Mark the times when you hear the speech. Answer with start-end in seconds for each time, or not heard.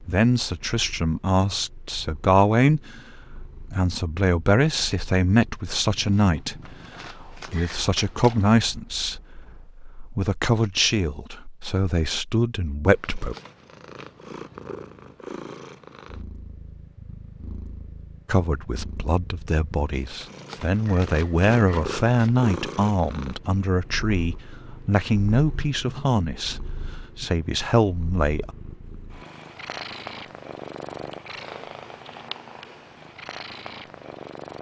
0.0-13.3, 18.2-28.5.